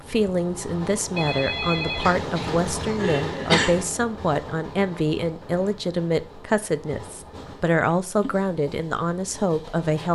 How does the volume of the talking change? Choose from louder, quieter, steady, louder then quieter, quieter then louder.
steady.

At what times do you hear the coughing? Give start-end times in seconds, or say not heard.
2.0-3.9.